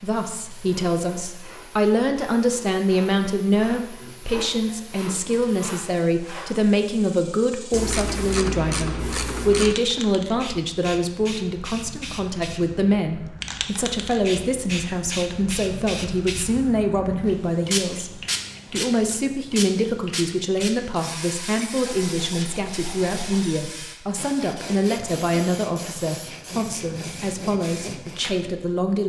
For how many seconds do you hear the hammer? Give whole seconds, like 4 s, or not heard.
not heard.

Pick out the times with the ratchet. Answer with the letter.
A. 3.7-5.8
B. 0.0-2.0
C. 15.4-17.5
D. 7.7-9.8
D.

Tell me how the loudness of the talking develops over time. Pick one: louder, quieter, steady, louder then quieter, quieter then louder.
steady.